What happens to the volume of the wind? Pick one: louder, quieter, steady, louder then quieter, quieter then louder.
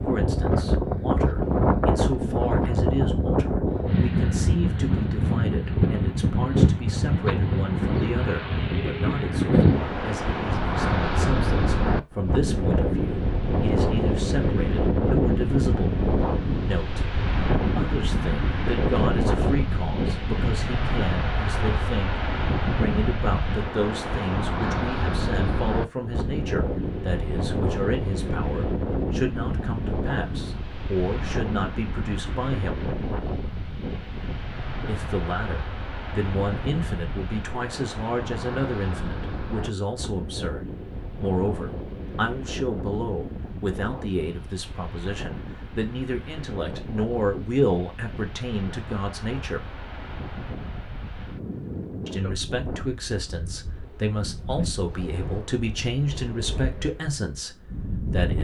quieter.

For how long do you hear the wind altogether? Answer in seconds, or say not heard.
58 s.